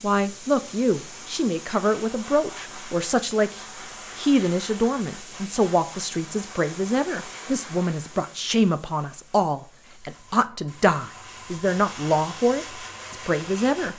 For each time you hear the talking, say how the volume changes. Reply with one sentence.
The talking can be heard from 0.0 to 13.9 s, at a steady volume.